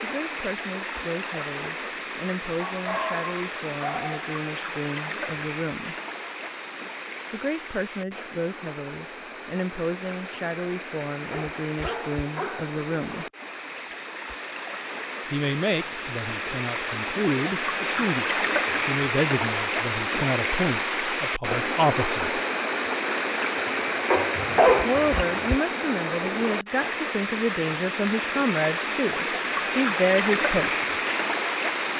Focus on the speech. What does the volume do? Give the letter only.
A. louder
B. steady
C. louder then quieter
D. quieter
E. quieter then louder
A.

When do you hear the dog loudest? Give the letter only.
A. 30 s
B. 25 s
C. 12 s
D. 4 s
B.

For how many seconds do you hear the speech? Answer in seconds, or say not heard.
25 s.